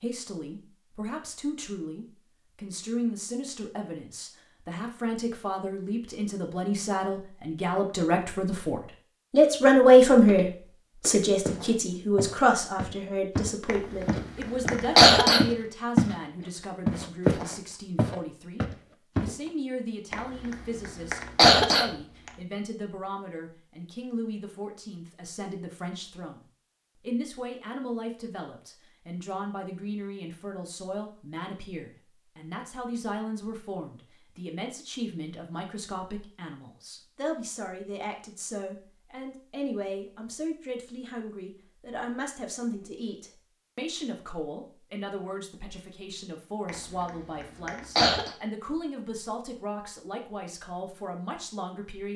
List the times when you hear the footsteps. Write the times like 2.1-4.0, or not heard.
10.2-16.1, 16.9-19.4.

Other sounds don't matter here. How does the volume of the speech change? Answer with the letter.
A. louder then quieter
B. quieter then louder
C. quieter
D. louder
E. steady
C.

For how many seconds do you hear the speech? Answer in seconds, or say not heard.
52 s.